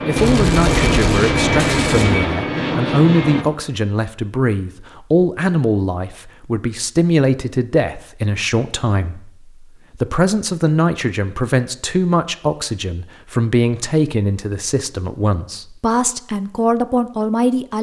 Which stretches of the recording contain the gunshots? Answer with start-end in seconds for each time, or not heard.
0.1-2.1.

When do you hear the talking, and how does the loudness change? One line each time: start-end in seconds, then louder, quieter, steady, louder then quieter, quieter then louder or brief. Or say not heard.
0.1-17.7 steady.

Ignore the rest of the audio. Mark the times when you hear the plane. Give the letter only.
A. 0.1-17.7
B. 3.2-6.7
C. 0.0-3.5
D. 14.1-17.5
C.